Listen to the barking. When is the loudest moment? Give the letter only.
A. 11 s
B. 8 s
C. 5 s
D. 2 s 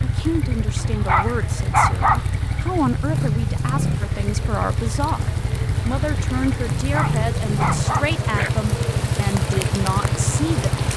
D.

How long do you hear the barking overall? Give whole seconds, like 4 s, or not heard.
3 s.